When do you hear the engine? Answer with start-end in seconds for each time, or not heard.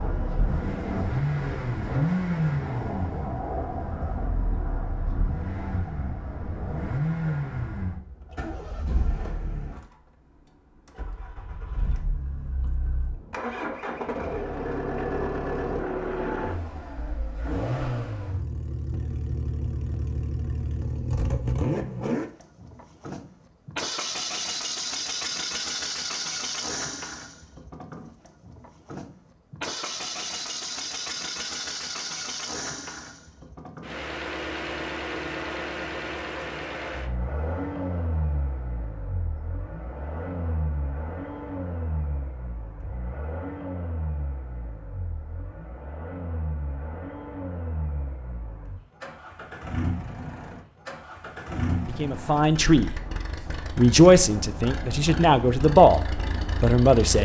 0.0-57.2.